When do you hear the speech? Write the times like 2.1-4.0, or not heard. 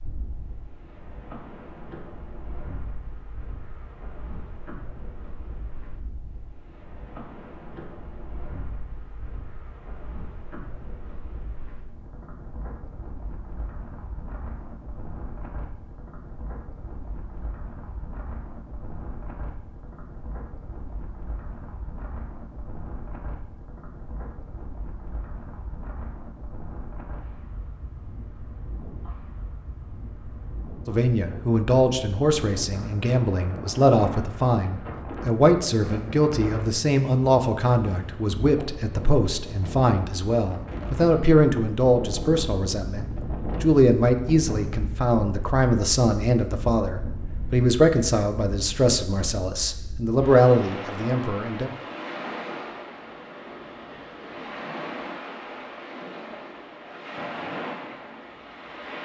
30.9-51.7.